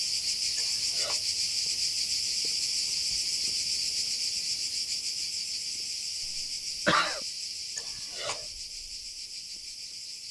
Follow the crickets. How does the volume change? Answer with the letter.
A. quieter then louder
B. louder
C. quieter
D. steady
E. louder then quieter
C.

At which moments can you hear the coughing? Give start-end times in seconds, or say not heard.
6.2-7.2.